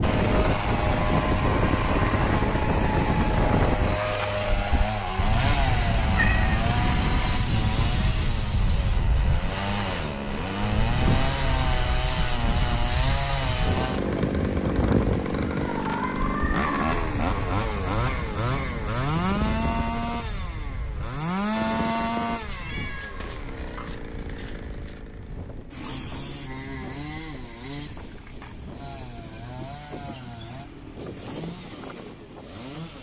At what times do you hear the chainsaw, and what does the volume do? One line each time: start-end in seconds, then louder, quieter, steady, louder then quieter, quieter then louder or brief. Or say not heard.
0.0-32.9 quieter.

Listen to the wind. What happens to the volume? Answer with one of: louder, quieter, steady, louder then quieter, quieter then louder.
quieter.